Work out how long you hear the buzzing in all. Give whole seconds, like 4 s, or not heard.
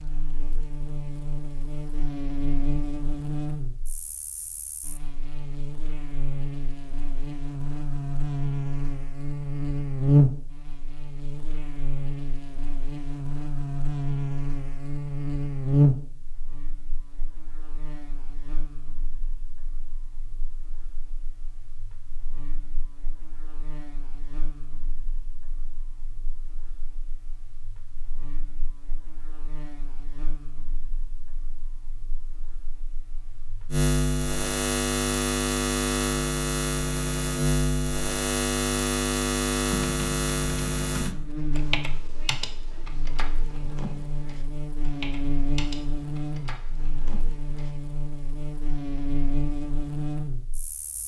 51 s.